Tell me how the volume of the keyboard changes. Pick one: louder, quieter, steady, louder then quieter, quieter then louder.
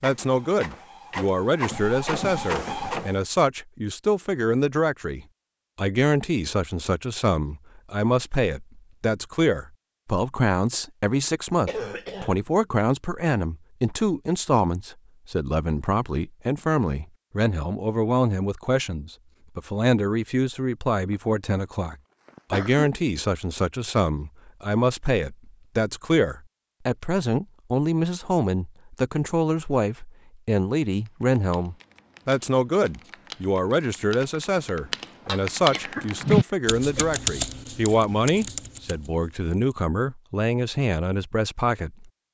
louder then quieter.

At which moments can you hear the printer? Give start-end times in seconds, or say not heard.
0.0-3.1.